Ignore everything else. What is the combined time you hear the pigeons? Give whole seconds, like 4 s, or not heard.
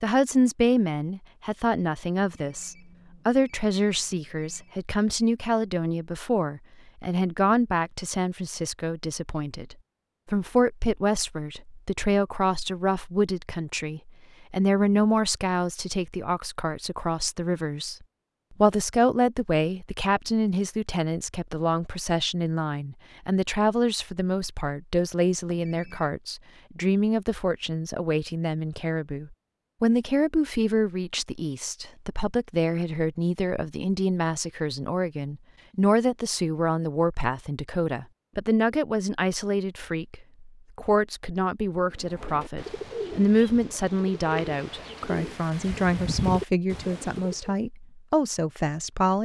6 s.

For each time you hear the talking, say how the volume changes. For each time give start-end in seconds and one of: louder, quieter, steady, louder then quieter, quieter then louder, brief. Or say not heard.
0.0-17.9 steady
18.6-49.2 steady.